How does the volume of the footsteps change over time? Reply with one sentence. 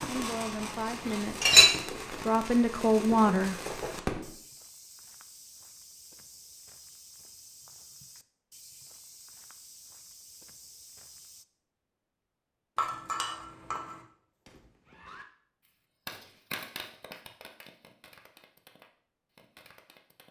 The loudness of the footsteps stays about the same.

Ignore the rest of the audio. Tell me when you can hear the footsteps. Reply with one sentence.
You can hear the footsteps from 3.7 to 11.4 s.